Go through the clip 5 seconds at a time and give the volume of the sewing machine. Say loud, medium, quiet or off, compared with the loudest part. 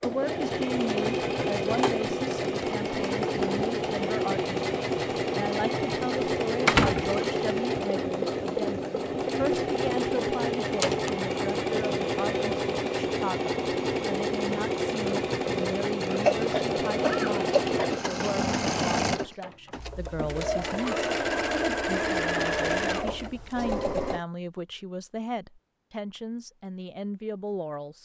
loud, loud, loud, loud, loud, off.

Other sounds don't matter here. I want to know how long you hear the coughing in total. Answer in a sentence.
The coughing can be heard for 2 seconds in total.